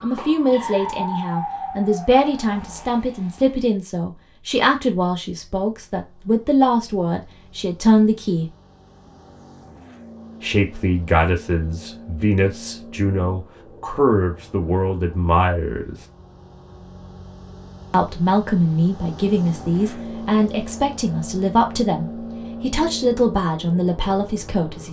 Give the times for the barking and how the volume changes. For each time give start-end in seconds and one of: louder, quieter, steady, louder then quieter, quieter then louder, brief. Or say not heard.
not heard.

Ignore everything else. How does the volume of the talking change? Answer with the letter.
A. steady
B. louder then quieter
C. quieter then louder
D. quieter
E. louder
A.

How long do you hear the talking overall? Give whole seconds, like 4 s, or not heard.
21 s.